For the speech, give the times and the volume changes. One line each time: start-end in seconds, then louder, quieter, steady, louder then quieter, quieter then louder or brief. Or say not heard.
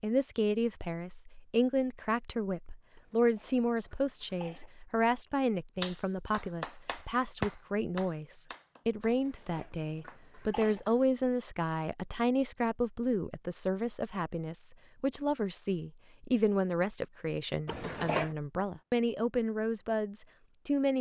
0.0-20.9 steady.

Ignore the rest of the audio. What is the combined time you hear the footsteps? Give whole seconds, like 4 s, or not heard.
not heard.